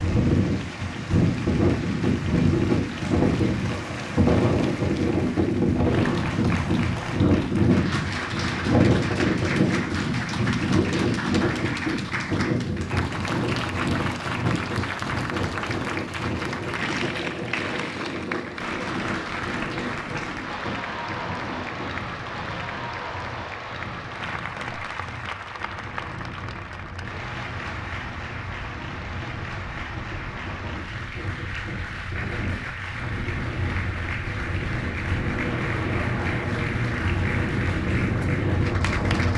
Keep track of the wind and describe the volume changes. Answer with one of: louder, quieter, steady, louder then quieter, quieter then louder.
quieter then louder.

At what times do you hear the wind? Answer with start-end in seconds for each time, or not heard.
0.0-39.3.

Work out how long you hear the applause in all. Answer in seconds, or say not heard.
39 s.